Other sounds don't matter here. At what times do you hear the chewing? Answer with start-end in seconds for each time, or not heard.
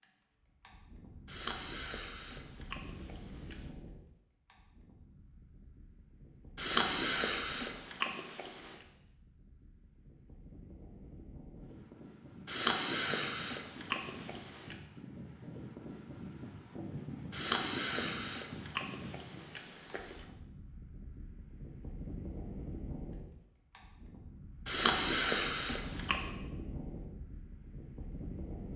1.2-3.7, 6.5-8.8, 12.4-14.8, 17.3-20.2, 24.6-26.3.